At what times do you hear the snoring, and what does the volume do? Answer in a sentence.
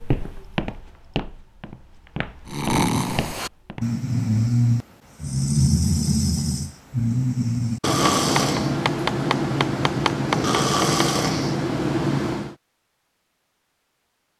The snoring can be heard from 2.5 to 12.6 s, at a steady volume.